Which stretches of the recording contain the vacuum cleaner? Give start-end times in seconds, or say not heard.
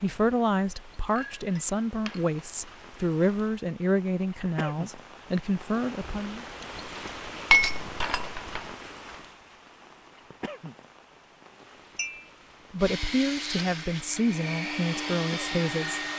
12.8-16.1.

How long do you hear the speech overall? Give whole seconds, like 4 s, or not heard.
10 s.